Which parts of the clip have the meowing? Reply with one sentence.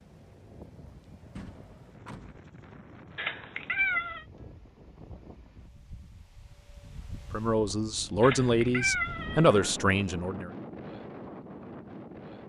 The meowing can be heard from 3.1 to 4.2 s and from 8.2 to 9.7 s.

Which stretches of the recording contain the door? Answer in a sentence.
You can hear the door from 1.3 to 2.4 s.